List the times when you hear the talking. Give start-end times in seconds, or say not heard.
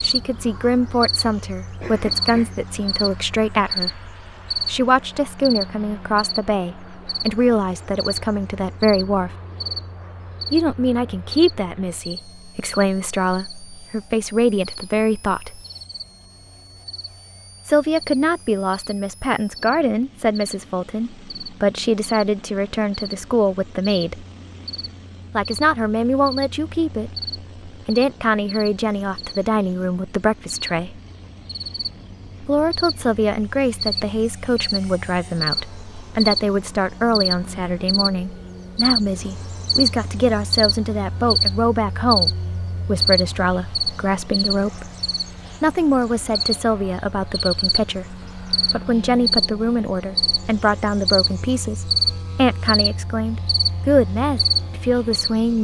0.0-9.3, 10.5-15.6, 17.6-24.2, 25.3-31.0, 32.4-44.9, 45.6-55.5.